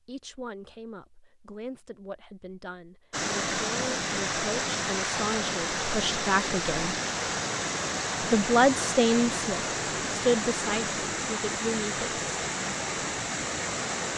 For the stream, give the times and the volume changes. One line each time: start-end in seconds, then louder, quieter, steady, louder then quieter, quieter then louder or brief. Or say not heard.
3.1-14.1 steady.